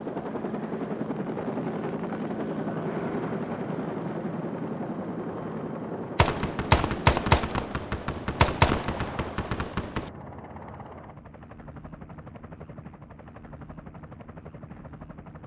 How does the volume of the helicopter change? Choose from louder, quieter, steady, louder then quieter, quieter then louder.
quieter.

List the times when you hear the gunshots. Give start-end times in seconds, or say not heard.
6.2-10.1.